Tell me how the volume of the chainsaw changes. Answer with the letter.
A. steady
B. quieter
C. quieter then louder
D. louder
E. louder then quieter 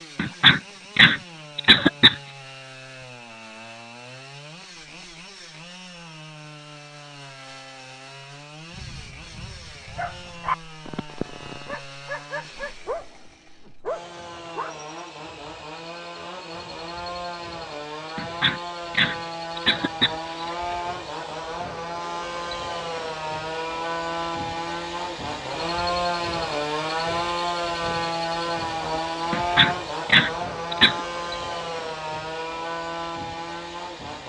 D.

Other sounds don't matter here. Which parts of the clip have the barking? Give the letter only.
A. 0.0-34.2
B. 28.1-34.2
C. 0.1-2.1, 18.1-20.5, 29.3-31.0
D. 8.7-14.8
D.